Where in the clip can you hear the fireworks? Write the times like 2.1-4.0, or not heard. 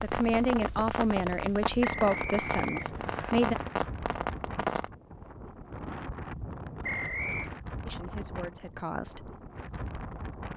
0.0-4.9.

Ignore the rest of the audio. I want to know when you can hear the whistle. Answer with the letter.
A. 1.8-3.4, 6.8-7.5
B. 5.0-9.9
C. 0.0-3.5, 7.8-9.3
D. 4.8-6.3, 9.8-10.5
A.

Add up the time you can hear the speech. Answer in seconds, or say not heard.
5 s.